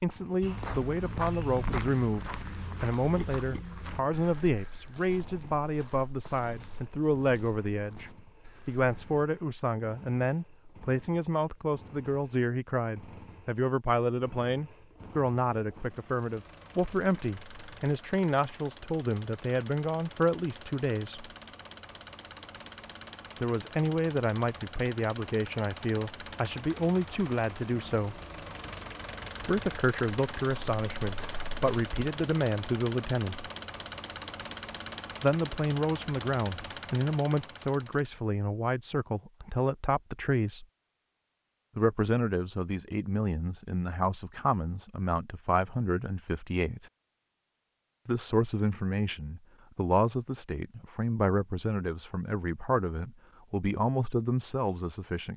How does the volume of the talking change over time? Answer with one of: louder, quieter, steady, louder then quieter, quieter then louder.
steady.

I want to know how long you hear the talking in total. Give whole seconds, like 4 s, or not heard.
48 s.